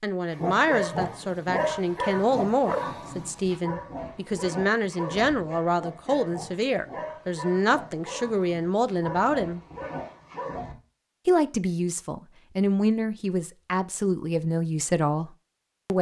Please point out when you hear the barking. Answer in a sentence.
You can hear the barking from 0.3 to 10.8 s.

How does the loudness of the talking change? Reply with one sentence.
The loudness of the talking stays about the same.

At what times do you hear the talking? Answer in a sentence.
You can hear the talking from 0.0 to 9.6 s and from 11.2 to 15.9 s.